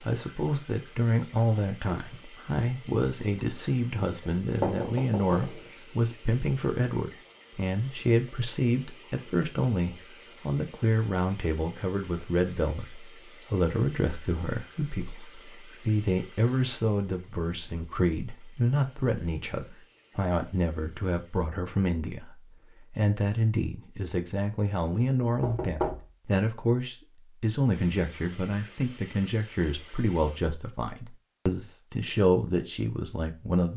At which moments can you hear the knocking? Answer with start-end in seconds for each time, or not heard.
4.6-5.6, 25.4-26.1.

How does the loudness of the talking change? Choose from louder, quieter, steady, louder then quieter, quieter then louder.
steady.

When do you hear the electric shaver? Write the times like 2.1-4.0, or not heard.
not heard.